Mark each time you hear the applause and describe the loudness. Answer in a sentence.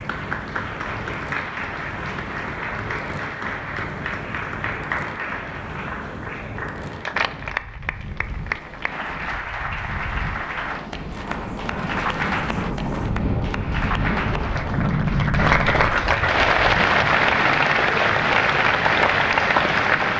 You can hear the applause from 0.0 to 20.1 s, getting louder.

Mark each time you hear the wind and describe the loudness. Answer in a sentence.
You can hear the wind from 0.0 to 20.1 s, getting louder then quieter.